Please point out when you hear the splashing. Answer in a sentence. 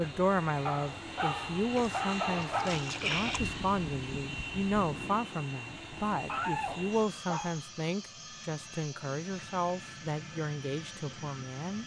You can hear the splashing from 1.8 to 3.4 s.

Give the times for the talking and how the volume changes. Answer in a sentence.
The talking can be heard from 0.0 to 11.8 s, at a steady volume.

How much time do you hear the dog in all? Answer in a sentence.
You can hear the dog for 4 seconds altogether.